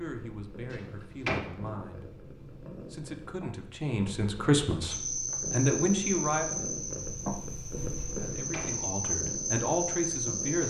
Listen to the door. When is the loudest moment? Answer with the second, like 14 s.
1 s.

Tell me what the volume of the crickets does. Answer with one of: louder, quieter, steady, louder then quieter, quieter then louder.
quieter then louder.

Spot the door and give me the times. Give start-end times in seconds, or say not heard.
0.7-1.4, 8.0-8.8.